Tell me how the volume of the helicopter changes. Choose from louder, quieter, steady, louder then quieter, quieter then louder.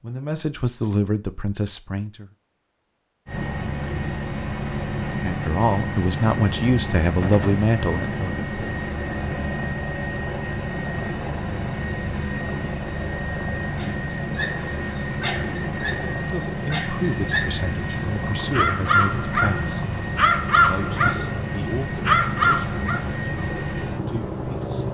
steady.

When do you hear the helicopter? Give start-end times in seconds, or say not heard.
3.2-24.8.